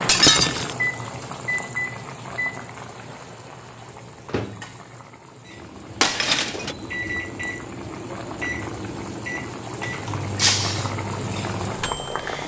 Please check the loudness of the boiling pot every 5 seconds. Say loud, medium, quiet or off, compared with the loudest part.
medium, medium, loud.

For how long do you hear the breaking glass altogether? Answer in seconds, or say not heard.
2 s.